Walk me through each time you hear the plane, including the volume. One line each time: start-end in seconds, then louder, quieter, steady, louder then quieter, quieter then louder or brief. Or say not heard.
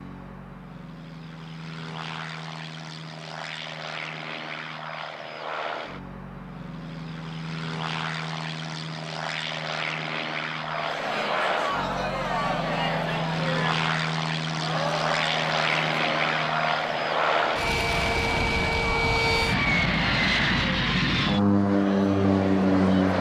0.0-23.1 louder.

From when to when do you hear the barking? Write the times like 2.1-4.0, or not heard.
not heard.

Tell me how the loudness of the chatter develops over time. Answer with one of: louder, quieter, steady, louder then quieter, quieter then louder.
quieter.